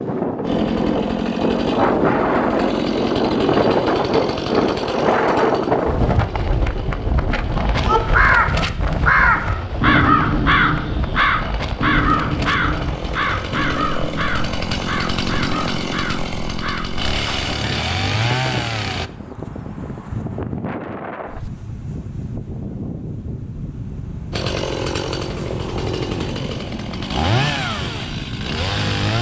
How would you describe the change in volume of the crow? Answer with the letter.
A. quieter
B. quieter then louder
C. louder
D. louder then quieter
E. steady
A.